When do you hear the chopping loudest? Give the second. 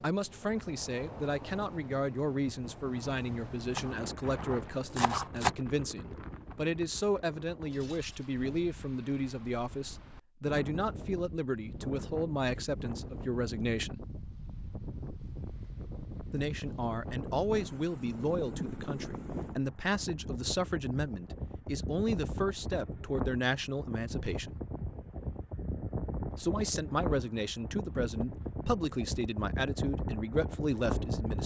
5 s.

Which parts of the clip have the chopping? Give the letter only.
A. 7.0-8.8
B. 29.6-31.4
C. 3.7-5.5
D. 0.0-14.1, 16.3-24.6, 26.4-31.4
C.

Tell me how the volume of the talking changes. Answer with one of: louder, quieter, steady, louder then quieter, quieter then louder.
steady.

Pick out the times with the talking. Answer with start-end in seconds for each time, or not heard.
0.0-14.1, 16.3-24.6, 26.4-31.4.